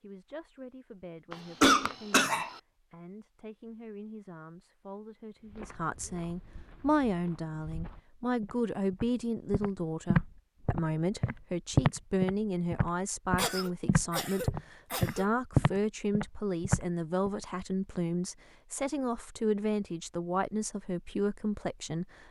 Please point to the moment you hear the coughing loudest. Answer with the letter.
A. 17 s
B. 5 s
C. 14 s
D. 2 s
D.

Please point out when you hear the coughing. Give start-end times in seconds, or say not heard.
1.3-2.5, 13.3-15.2.